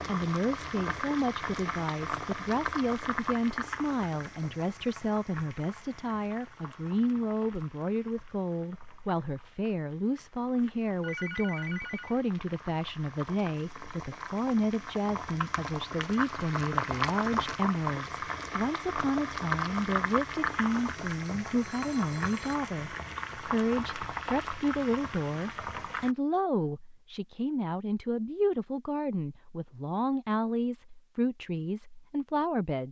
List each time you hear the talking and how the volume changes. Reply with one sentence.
You can hear the talking from 0.1 to 32.8 s, at a steady volume.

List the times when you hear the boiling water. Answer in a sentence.
You can hear the boiling water from 0.0 to 26.1 s.